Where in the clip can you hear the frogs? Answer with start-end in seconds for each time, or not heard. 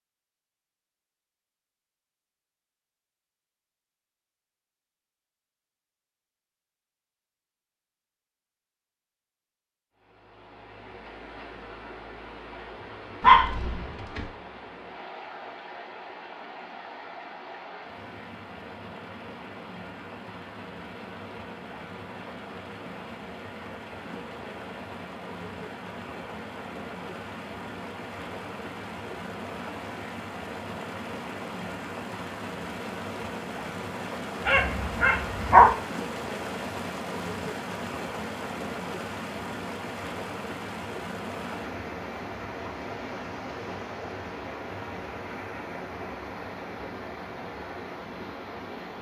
not heard.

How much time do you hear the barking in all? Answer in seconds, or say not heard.
2 s.